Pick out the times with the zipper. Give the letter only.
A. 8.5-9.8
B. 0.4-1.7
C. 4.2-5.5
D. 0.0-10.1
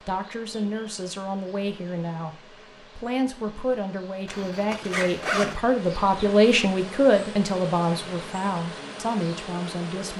C.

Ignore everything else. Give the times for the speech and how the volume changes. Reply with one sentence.
You can hear the speech from 0.0 to 10.1 s, getting louder then quieter.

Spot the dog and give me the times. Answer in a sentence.
You can't hear the dog here.